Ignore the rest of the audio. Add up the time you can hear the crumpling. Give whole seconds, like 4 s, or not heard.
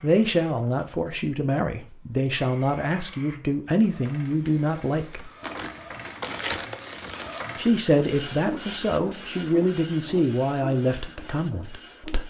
2 s.